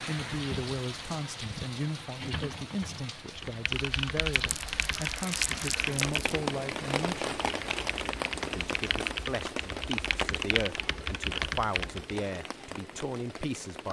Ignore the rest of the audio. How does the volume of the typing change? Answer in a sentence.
The loudness of the typing stays about the same.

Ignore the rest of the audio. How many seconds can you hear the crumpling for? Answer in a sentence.
You can hear the crumpling for 2 seconds altogether.